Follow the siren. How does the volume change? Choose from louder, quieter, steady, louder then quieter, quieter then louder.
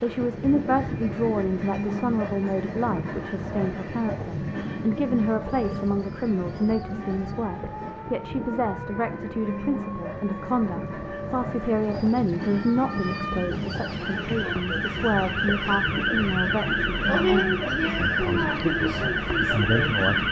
louder.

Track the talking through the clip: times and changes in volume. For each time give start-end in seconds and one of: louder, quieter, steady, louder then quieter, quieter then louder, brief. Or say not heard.
0.0-20.2 steady.